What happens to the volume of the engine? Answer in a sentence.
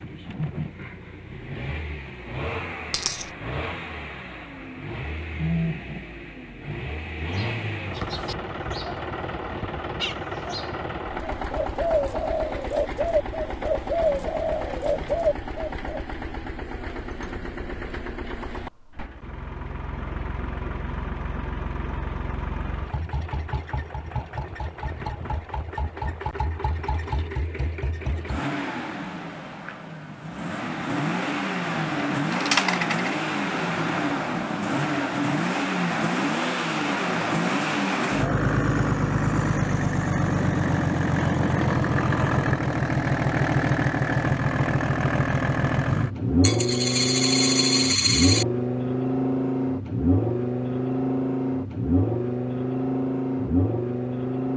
The loudness of the engine goes up.